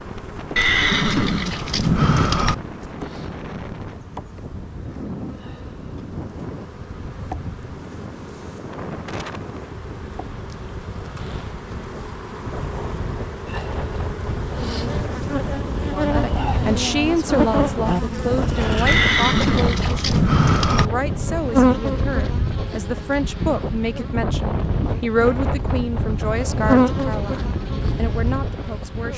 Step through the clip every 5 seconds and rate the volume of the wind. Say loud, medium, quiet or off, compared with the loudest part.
medium, medium, medium, loud, loud, loud.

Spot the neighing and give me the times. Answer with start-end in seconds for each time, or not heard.
0.6-2.5, 18.9-20.9.